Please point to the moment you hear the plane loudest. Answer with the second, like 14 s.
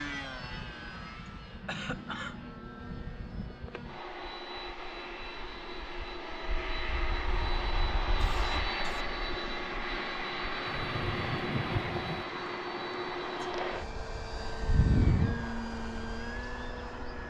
15 s.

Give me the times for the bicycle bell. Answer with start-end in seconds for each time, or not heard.
not heard.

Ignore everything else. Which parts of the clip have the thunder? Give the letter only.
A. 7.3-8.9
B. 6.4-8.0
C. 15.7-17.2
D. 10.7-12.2
D.